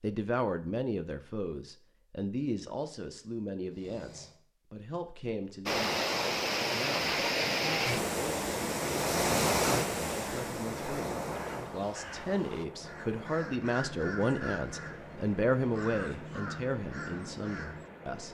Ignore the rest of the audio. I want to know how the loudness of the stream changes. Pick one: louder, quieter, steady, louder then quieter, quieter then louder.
quieter.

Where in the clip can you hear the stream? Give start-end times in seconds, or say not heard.
5.7-18.2.